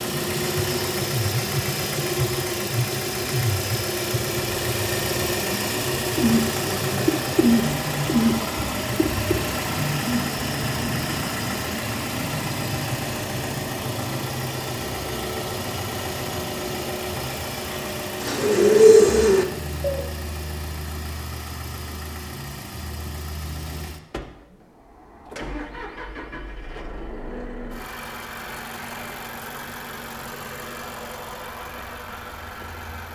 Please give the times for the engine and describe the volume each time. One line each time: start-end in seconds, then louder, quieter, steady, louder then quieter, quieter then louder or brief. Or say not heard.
0.0-33.1 quieter.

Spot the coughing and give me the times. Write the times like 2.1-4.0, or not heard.
not heard.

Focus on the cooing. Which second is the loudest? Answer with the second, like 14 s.
19 s.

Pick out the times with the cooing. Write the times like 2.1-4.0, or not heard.
6.1-9.3, 18.2-20.0.